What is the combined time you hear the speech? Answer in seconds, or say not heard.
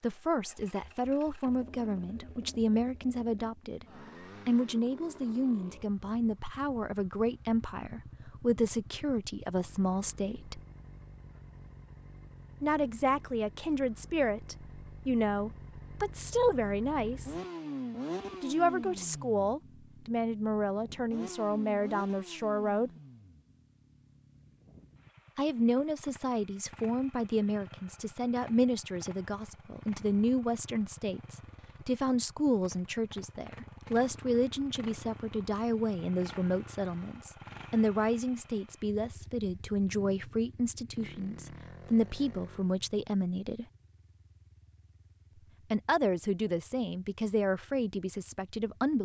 41 s.